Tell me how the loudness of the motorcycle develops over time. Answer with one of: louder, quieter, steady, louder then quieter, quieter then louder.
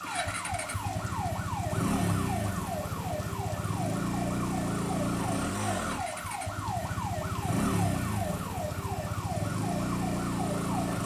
steady.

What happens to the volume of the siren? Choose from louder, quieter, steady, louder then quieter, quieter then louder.
steady.